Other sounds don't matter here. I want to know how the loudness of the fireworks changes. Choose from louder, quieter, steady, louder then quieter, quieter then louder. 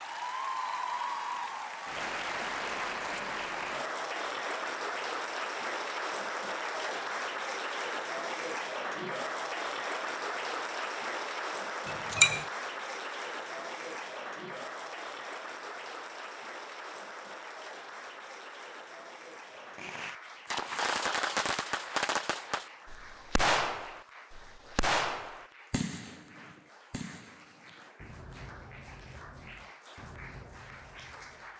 quieter.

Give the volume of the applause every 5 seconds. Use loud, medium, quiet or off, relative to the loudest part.
loud, loud, loud, medium, quiet, quiet, quiet.